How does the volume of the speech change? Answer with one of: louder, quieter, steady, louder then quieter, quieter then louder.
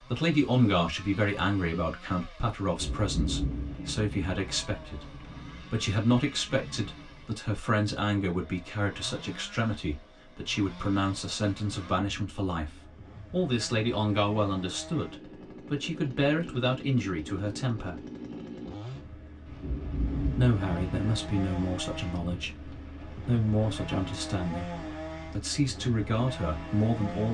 steady.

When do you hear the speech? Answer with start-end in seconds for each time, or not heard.
0.1-18.0, 20.3-27.2.